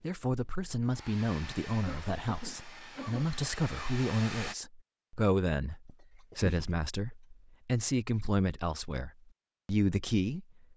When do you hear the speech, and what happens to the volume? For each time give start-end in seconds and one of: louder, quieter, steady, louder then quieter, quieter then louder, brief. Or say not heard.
0.0-10.4 steady.